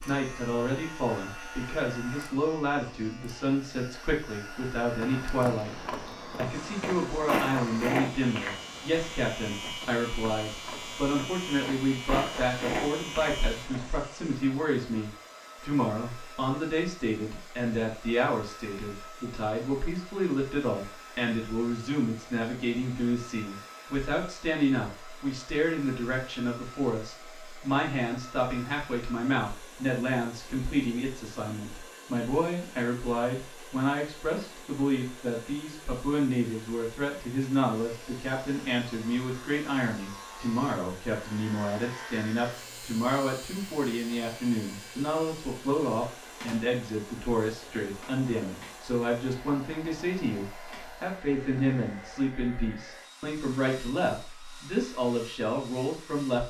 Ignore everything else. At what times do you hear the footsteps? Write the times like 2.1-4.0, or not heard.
5.0-13.9.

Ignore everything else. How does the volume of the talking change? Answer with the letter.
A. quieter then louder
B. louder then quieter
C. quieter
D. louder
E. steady
E.